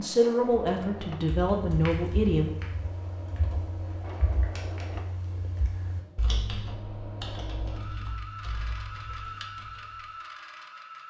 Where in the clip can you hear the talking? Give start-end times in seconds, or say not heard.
0.0-2.5.